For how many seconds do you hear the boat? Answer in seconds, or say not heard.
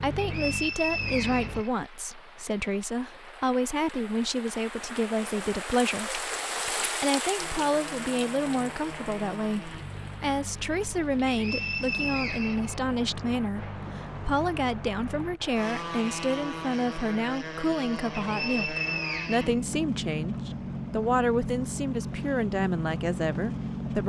18 s.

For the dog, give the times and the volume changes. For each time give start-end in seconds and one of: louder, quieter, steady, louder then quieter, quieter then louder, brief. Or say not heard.
not heard.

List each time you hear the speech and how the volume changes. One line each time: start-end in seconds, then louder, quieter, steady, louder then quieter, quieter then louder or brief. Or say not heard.
0.0-24.0 steady.